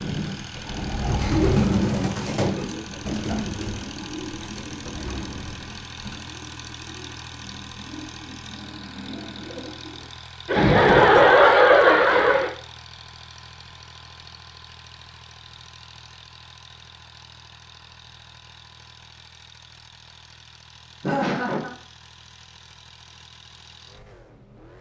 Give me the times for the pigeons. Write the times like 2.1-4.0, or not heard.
0.0-10.1.